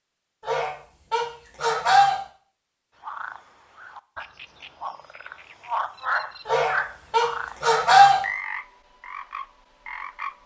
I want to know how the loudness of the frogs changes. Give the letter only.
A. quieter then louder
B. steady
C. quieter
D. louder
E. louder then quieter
E.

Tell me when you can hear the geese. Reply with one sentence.
You can hear the geese from 0.5 to 2.2 s and from 6.5 to 8.2 s.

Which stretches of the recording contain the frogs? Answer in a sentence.
You can hear the frogs from 3.0 to 10.4 s.